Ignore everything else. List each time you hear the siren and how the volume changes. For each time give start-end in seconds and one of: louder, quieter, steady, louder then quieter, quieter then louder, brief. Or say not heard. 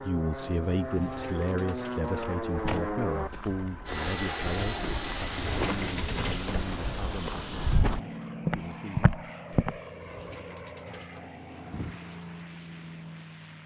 not heard.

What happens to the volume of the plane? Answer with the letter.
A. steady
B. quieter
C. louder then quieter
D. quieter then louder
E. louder
B.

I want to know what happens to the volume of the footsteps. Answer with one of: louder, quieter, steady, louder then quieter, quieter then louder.
louder.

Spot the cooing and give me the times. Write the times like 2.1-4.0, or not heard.
0.4-2.9, 4.8-6.8, 9.4-12.0.